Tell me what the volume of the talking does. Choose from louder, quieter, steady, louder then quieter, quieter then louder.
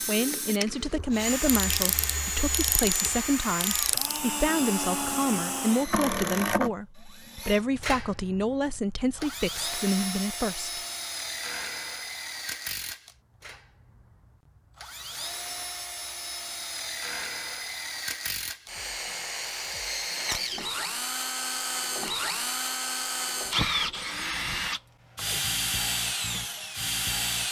steady.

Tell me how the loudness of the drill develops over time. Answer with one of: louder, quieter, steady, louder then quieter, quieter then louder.
quieter then louder.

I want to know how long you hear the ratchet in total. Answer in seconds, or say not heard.
3 s.